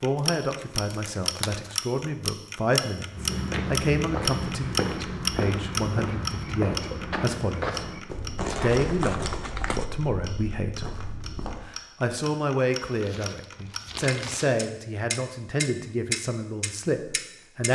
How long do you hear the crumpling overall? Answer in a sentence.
The crumpling can be heard for 5 seconds in total.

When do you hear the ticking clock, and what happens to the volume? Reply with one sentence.
You can hear the ticking clock from 0.0 to 17.7 s, getting quieter then louder.